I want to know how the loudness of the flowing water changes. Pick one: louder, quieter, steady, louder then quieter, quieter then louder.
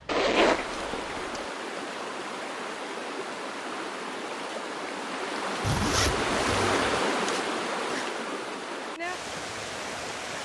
louder then quieter.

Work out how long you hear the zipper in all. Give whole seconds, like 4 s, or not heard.
3 s.